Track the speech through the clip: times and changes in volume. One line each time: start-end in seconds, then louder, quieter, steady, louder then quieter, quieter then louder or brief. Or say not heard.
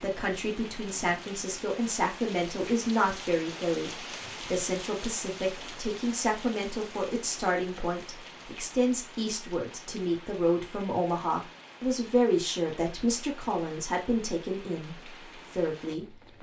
0.0-16.1 steady.